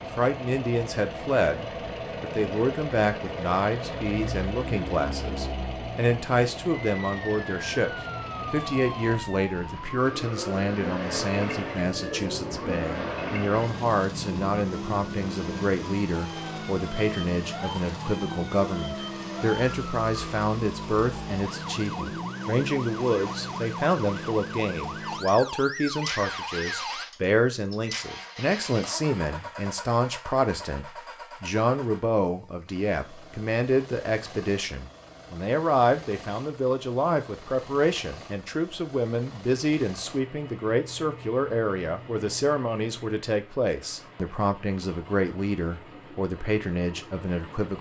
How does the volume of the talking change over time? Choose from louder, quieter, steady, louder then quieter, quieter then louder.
steady.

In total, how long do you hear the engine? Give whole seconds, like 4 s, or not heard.
48 s.